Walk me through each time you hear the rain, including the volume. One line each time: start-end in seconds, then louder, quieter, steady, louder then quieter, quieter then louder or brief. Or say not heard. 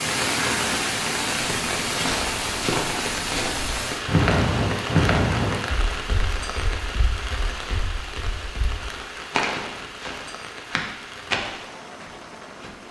0.0-12.8 quieter.